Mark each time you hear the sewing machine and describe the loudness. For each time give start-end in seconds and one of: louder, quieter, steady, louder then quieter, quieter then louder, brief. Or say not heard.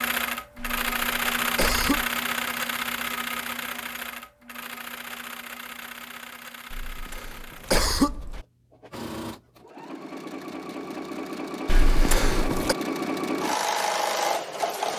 0.0-14.9 quieter then louder.